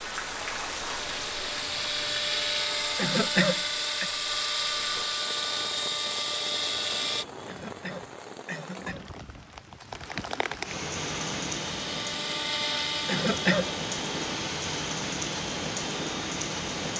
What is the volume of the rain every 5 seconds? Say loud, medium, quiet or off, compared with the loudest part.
medium, medium, loud, loud.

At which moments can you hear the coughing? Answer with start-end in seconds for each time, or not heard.
3.0-4.1, 7.5-9.1, 13.1-13.7.